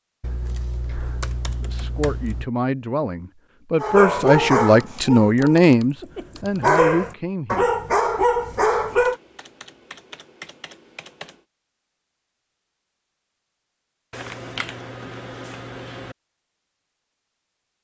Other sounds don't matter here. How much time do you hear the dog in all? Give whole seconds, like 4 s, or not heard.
5 s.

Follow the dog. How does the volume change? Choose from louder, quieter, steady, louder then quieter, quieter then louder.
quieter then louder.